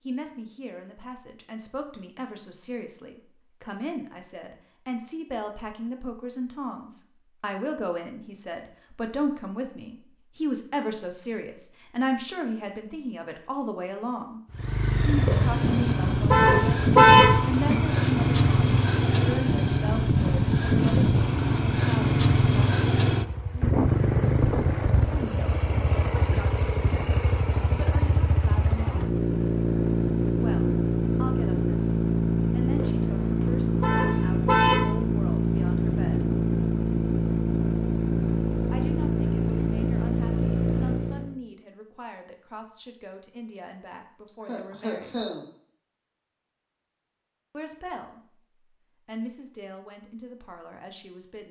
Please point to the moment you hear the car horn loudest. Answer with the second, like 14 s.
17 s.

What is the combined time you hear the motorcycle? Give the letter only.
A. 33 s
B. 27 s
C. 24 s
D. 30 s
B.